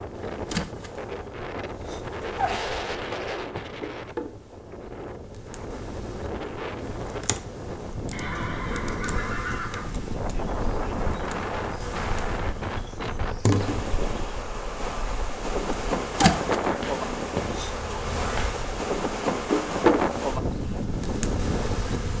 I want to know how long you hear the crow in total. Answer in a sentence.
You can't hear the crow here.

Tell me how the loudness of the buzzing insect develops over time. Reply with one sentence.
The loudness of the buzzing insect goes down, then up.